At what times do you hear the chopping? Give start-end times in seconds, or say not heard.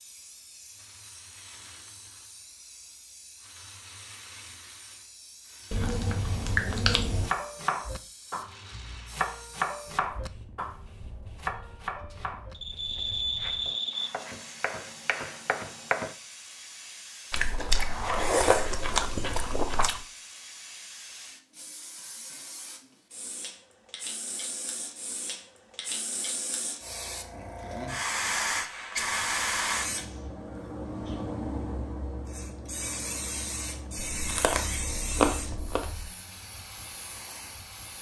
7.2-16.1.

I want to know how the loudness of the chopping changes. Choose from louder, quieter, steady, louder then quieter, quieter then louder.
quieter then louder.